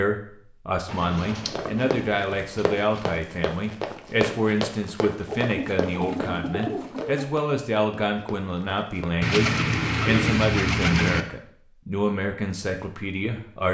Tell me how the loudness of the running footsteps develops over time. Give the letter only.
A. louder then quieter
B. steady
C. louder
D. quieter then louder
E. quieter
E.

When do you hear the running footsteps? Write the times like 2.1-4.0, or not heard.
1.4-9.1.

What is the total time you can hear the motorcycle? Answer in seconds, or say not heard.
not heard.